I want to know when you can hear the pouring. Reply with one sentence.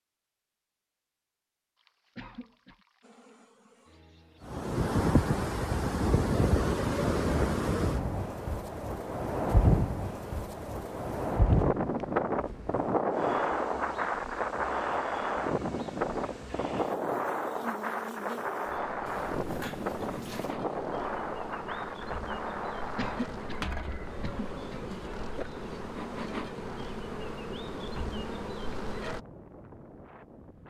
You can hear the pouring from 1.8 to 3.4 s and from 19.1 to 20.6 s.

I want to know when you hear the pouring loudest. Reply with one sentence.
The loudest moment of the pouring is at 20 seconds.